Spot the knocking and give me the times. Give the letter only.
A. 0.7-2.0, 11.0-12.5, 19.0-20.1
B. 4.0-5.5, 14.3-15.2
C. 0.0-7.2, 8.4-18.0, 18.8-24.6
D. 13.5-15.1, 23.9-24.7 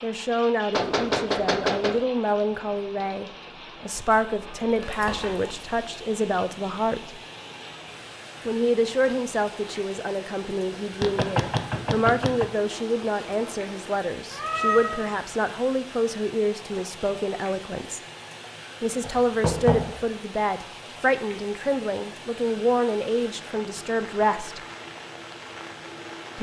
A.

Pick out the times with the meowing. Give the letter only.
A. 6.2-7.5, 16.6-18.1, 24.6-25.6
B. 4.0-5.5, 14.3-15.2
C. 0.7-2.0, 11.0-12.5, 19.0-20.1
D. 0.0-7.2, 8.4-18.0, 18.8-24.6
B.